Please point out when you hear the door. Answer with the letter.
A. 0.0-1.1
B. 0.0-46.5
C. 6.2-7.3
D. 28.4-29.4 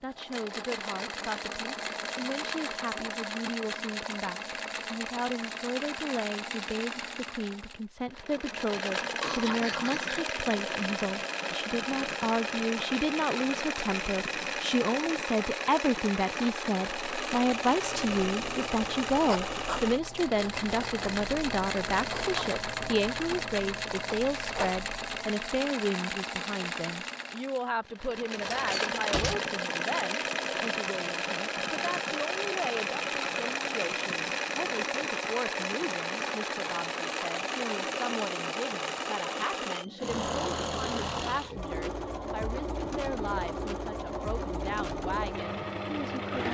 D.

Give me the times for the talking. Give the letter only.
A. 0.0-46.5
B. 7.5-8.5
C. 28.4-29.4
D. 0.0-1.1
A.